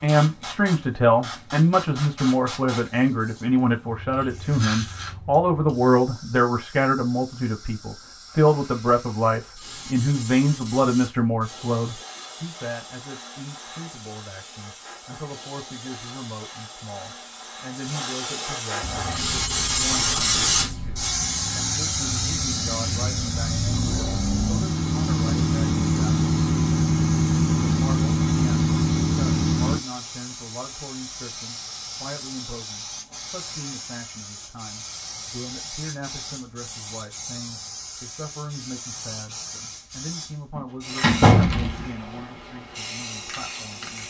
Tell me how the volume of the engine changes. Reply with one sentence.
The volume of the engine goes up.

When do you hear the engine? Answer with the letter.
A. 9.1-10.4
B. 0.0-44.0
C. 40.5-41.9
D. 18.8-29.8
D.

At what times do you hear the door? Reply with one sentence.
You can hear the door from 40.5 to 41.9 s.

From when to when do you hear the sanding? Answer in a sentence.
You can't hear the sanding here.